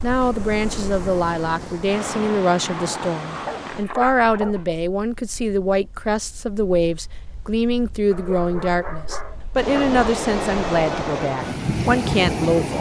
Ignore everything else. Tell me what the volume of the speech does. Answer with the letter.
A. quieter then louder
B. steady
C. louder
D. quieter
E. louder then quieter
B.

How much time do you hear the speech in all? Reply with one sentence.
You can hear the speech for 13 seconds altogether.